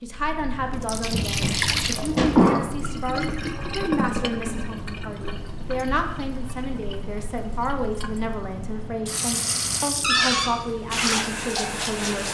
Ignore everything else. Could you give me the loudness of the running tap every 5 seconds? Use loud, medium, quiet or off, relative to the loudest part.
loud, medium, loud.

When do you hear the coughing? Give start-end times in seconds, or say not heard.
1.1-2.9.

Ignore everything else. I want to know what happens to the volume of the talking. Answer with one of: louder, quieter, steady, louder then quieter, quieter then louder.
steady.